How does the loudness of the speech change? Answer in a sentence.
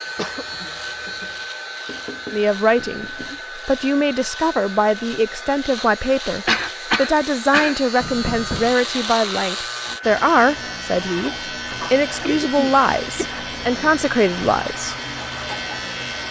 The loudness of the speech stays about the same.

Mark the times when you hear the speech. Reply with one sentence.
You can hear the speech from 2.3 to 14.9 s.